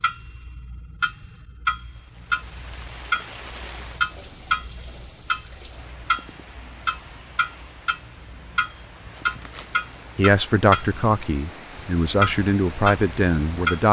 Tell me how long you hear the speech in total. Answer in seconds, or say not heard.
4 s.